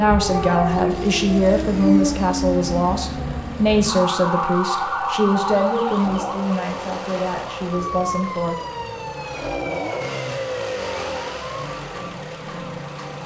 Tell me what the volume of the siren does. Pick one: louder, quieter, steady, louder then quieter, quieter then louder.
quieter.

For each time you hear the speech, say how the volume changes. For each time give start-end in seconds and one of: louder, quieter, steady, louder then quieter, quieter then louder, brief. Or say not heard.
0.0-8.6 quieter.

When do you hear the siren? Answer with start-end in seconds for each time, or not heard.
0.0-13.2.